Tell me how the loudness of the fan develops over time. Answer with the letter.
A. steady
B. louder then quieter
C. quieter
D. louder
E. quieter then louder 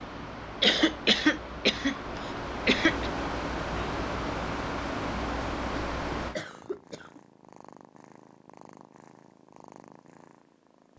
D.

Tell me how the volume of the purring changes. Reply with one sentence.
The volume of the purring stays about the same.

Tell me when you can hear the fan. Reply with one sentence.
You can hear the fan from 0.0 to 6.3 s.